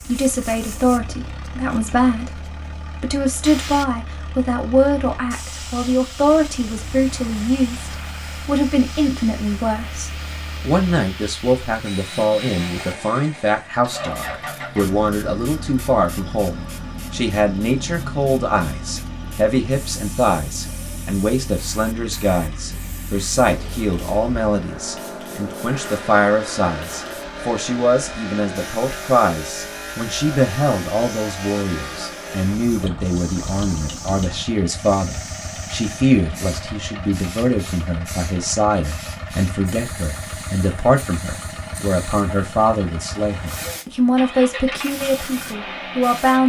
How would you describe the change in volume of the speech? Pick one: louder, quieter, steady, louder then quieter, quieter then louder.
steady.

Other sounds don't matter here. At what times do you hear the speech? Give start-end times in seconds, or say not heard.
0.1-46.4.